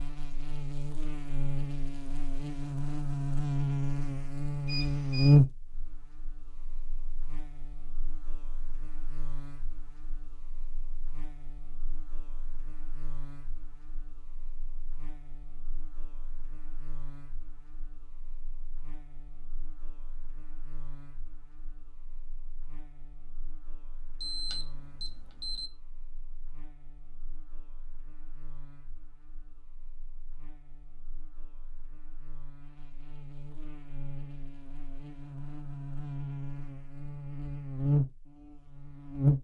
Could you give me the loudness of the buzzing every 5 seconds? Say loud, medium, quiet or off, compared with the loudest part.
medium, loud, quiet, quiet, quiet, quiet, quiet, loud.